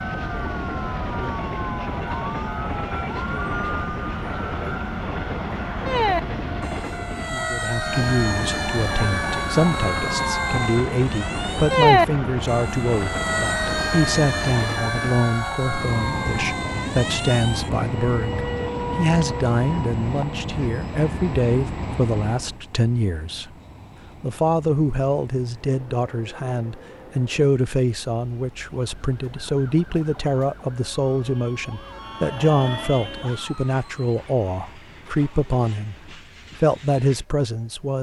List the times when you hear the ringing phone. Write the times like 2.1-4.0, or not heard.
not heard.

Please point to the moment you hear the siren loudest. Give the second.
12 s.